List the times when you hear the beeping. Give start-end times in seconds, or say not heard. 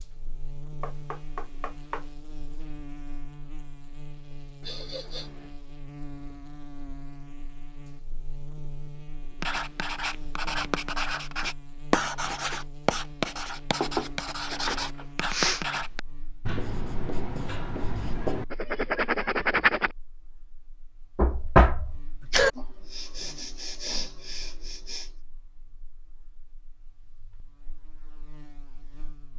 not heard.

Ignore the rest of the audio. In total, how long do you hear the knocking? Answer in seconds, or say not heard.
4 s.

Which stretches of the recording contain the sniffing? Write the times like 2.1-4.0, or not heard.
4.6-5.5, 15.2-15.7, 22.6-25.1.